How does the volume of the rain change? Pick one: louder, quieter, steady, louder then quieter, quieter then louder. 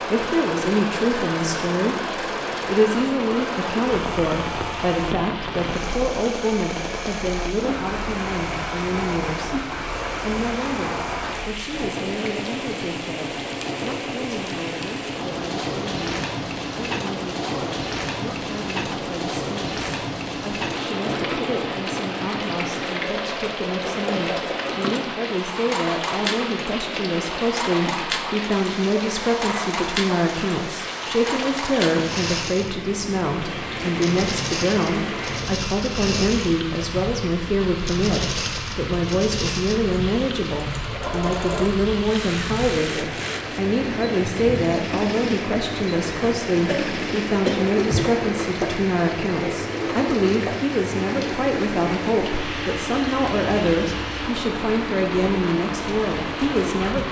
steady.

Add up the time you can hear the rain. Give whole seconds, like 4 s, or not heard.
57 s.